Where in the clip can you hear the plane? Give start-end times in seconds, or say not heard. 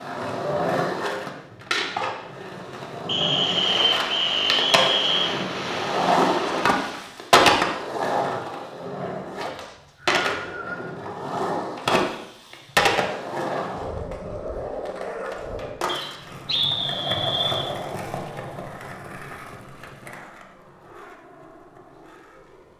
3.2-7.2.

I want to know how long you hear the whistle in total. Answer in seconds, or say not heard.
5 s.